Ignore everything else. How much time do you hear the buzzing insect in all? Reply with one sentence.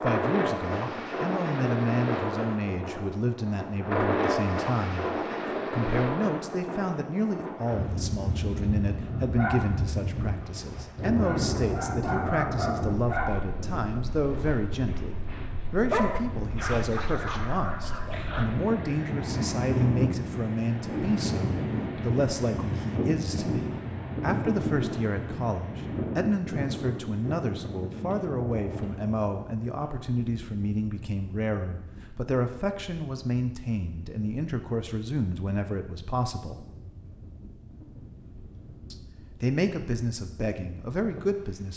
The buzzing insect can't be heard in this clip.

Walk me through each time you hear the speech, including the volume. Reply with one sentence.
You can hear the speech from 0.0 to 36.6 s, at a steady volume; and briefly from 38.9 to 41.7 s.